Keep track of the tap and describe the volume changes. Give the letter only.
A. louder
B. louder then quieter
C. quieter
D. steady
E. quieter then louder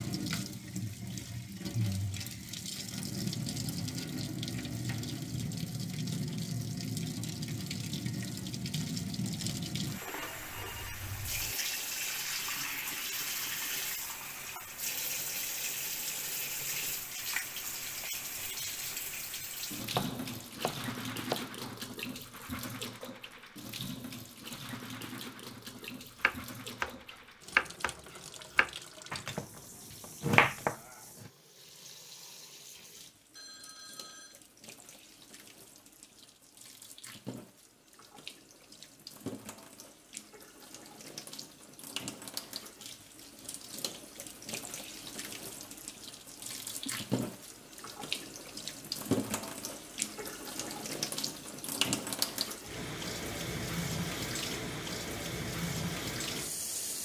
E.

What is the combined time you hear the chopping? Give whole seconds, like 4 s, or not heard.
5 s.